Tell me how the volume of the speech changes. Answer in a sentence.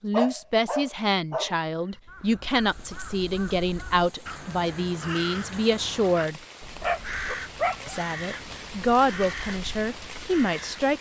The volume of the speech stays about the same.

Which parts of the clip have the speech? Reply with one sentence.
You can hear the speech from 0.0 to 6.4 s and from 7.8 to 10.9 s.